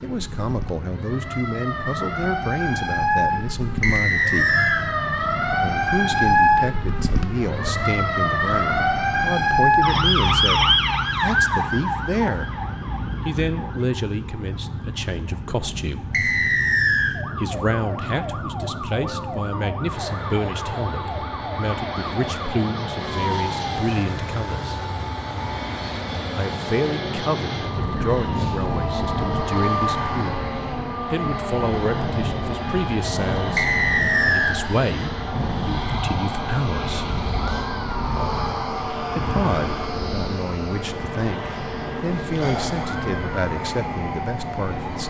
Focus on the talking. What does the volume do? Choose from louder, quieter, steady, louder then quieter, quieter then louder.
steady.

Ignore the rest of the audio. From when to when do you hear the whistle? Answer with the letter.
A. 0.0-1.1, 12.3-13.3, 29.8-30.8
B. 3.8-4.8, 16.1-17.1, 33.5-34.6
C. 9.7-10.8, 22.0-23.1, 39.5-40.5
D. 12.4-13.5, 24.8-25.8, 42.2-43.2
B.